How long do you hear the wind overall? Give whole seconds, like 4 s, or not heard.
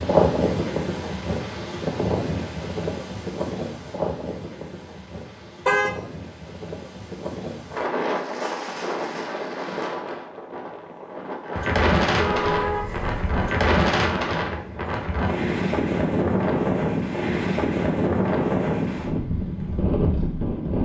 21 s.